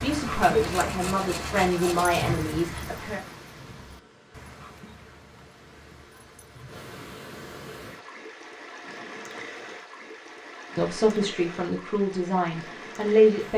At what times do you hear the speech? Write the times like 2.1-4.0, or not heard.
0.0-3.2, 10.8-13.5.